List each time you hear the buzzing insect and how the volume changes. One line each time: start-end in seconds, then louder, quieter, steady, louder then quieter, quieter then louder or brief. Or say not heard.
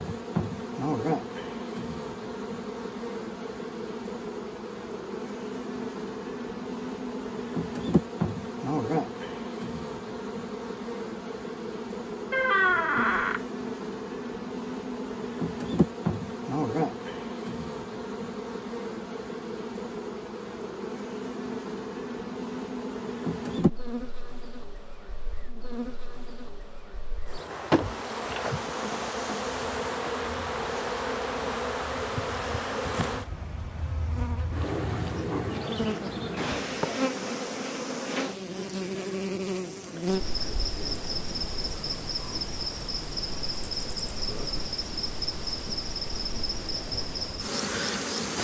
0.0-48.3 steady.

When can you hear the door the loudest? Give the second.
13 s.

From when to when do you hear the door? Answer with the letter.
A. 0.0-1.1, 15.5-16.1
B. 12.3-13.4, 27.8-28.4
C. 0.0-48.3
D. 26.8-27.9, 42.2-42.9
B.